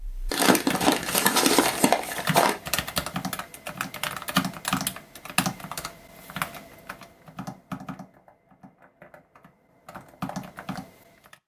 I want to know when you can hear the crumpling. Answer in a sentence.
You can hear the crumpling from 0.3 to 2.6 s.